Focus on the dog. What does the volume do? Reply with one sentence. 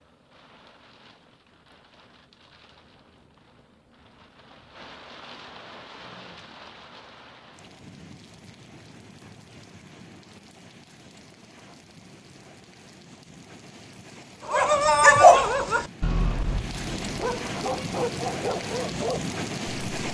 The volume of the dog goes down.